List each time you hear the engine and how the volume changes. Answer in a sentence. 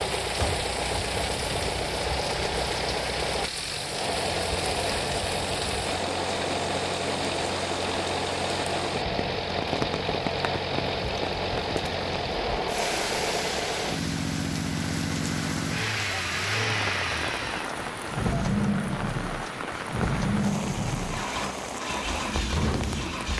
The engine can be heard from 0.0 to 23.3 s, at a steady volume.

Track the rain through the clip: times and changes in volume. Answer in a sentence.
You can hear the rain from 0.0 to 23.3 s, at a steady volume.